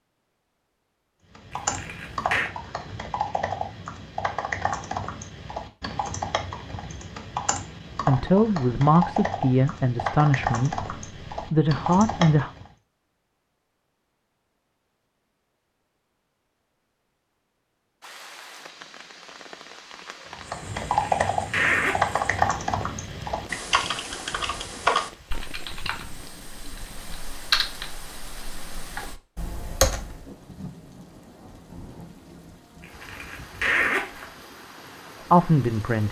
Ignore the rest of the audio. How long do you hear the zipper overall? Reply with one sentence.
You can hear the zipper for 4 seconds altogether.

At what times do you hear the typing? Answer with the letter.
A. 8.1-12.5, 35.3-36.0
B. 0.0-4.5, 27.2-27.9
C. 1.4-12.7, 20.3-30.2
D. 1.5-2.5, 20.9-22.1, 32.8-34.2
C.